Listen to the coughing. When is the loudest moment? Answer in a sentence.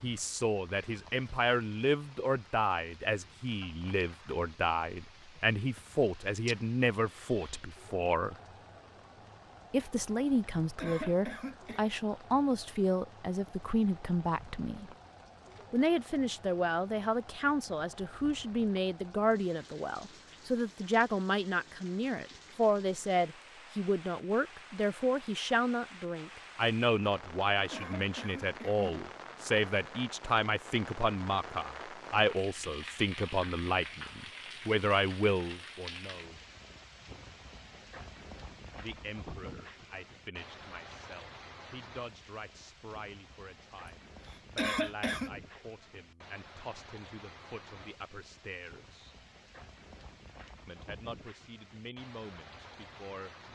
The volume of the coughing peaks at 45 seconds.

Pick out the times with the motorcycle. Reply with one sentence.
You can't hear the motorcycle here.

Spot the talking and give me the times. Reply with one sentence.
You can hear the talking from 0.0 to 8.3 s, from 9.7 to 14.9 s, from 15.7 to 36.5 s, from 38.8 to 49.1 s and from 50.6 to 53.4 s.